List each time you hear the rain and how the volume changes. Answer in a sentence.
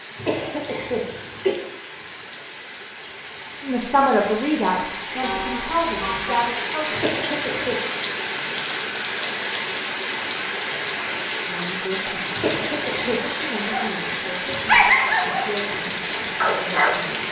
The rain can be heard from 0.0 to 17.2 s, getting louder.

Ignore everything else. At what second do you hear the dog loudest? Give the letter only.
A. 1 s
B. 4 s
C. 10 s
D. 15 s
D.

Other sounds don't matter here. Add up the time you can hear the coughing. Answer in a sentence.
You can hear the coughing for 3 seconds altogether.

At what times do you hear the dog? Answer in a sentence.
You can hear the dog from 13.6 to 17.0 s.